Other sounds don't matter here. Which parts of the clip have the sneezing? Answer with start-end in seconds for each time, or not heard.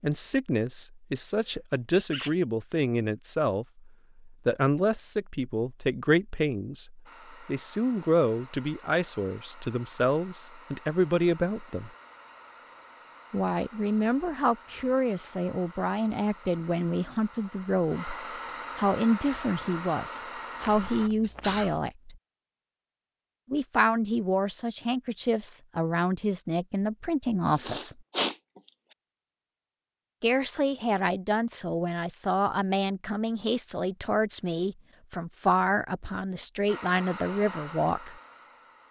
1.7-2.4, 20.6-21.8, 27.5-28.4.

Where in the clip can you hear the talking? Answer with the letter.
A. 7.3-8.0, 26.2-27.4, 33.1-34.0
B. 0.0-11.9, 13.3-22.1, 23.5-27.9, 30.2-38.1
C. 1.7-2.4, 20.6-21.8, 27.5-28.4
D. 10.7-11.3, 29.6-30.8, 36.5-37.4
B.